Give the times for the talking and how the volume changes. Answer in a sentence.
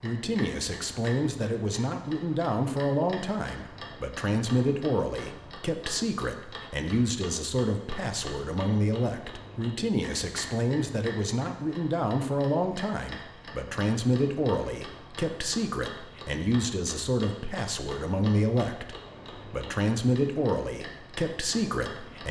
The talking can be heard from 0.0 to 22.2 s, at a steady volume.